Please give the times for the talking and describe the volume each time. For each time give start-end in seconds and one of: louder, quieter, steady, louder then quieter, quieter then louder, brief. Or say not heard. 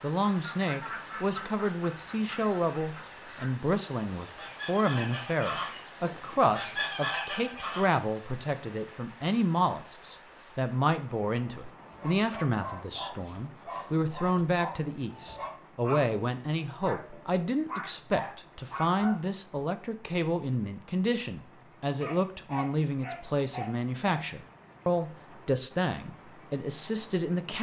0.0-27.5 steady.